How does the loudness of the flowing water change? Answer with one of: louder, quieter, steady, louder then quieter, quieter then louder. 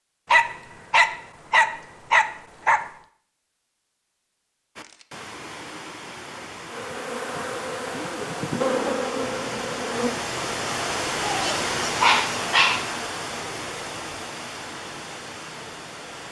louder then quieter.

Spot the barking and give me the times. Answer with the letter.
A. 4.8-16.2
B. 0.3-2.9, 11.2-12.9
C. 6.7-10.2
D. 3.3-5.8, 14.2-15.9
B.